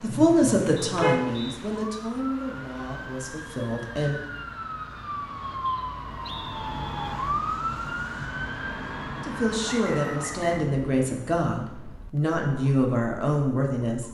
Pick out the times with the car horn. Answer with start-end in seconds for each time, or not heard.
0.1-1.2.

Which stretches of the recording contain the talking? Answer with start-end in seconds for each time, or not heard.
0.0-4.2, 9.2-14.0.